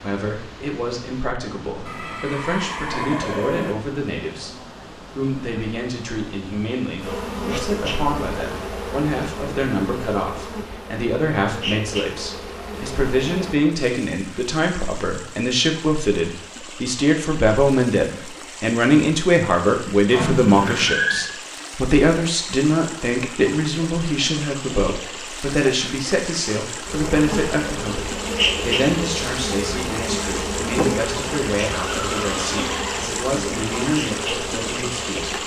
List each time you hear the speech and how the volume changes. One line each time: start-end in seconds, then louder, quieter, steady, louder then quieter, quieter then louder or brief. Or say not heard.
0.0-35.4 louder then quieter.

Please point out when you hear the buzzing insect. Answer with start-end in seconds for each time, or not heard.
7.0-13.6, 26.9-35.4.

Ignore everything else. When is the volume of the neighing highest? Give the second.
21 s.